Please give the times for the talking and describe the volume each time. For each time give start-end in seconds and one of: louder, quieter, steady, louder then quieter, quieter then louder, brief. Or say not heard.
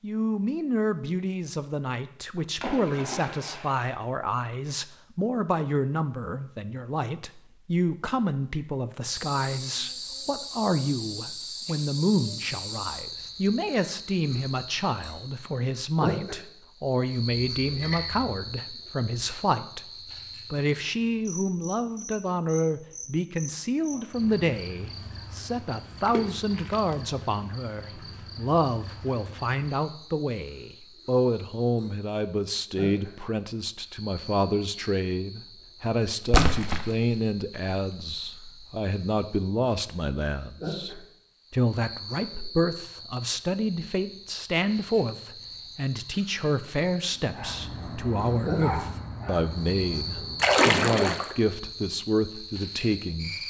0.0-19.8 steady
20.5-53.4 steady.